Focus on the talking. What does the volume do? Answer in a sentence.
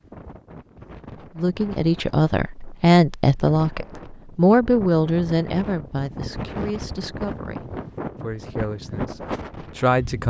The loudness of the talking goes down.